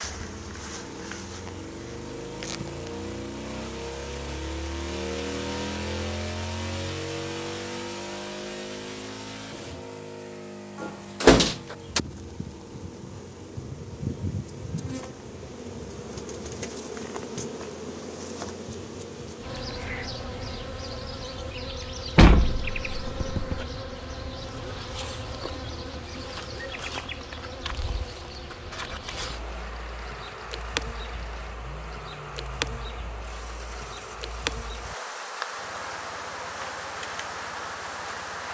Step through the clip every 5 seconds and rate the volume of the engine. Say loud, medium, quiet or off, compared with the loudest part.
loud, loud, medium, quiet, quiet, quiet, quiet, quiet.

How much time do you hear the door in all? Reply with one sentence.
The door can be heard for 3 seconds in total.